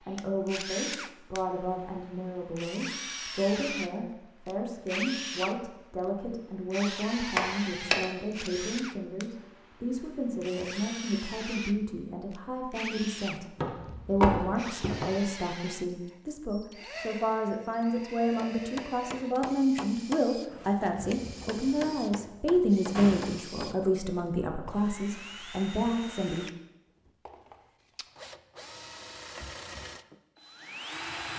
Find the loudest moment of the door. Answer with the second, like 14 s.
14 s.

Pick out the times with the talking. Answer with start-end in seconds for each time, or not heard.
0.1-26.4.